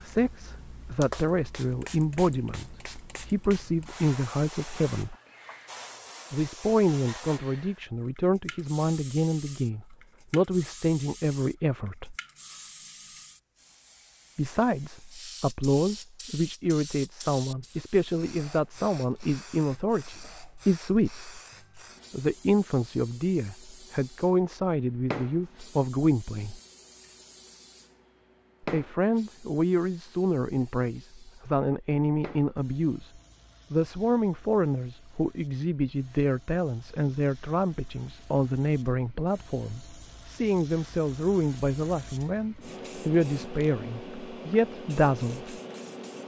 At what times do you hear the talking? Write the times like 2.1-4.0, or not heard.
0.0-5.2, 6.3-12.2, 14.3-21.4, 22.1-26.6, 28.6-45.5.